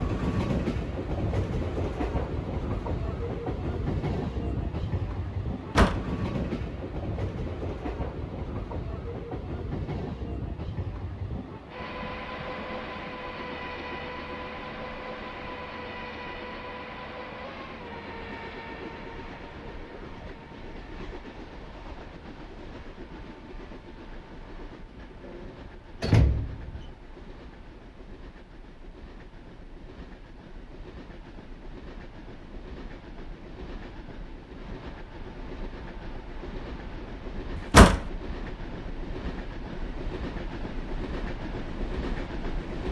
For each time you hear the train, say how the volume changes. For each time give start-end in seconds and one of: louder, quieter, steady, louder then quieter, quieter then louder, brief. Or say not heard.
0.0-42.8 quieter then louder.